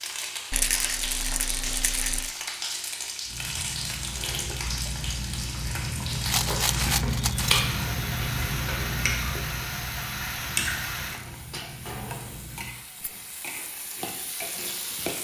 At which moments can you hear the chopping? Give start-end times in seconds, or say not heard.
not heard.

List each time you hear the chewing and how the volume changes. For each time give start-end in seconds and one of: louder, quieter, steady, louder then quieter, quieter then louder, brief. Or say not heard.
3.2-12.8 louder then quieter.